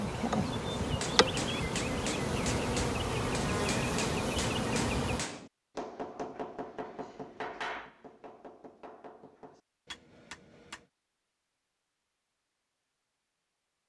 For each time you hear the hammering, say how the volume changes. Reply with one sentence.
You can hear the hammering from 0.8 to 10.9 s, getting quieter.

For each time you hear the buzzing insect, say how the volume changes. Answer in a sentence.
The buzzing insect can be heard from 0.0 to 5.2 s, at a steady volume.